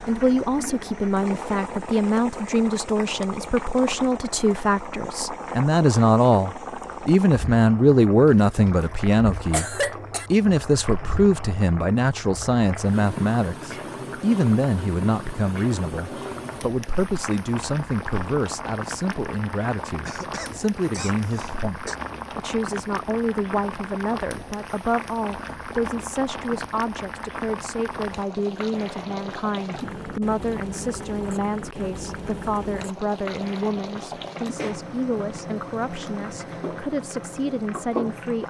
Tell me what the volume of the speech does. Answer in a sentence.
The loudness of the speech goes down.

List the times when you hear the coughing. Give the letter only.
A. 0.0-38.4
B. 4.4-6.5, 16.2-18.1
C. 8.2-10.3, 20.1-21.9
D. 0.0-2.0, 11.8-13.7
C.